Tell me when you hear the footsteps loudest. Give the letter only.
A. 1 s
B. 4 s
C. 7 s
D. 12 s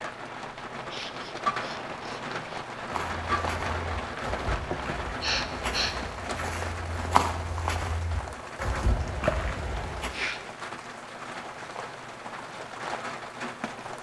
C.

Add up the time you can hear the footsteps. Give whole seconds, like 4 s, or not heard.
7 s.